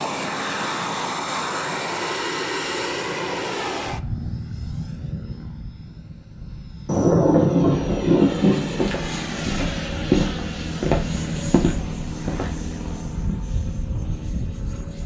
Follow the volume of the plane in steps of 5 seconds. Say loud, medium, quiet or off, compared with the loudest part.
loud, medium, loud.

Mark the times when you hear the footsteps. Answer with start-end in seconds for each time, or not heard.
8.7-12.6.